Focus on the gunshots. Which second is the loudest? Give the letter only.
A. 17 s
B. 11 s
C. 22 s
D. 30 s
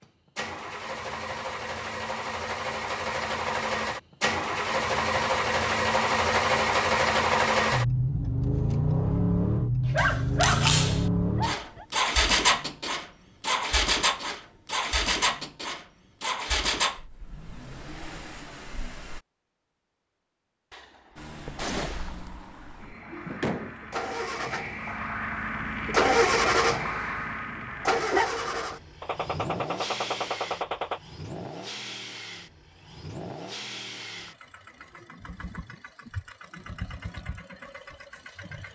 B.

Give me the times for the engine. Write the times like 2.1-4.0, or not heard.
0.0-19.2, 21.1-38.6.